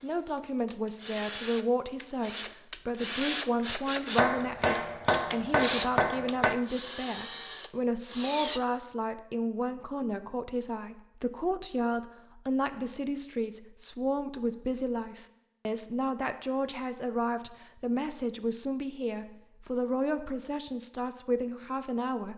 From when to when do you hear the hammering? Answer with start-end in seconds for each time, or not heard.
4.2-6.6.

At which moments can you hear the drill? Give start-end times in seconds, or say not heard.
0.0-8.6.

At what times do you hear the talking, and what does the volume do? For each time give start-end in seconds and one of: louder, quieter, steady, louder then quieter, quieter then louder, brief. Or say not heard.
0.0-22.3 steady.